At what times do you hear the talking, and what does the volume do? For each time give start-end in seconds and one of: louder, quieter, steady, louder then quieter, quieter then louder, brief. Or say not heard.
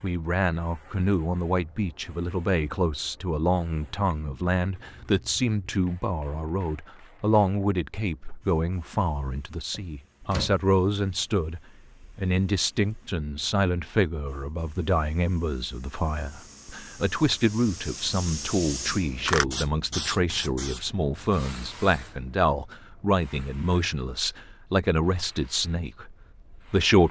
0.0-27.0 steady.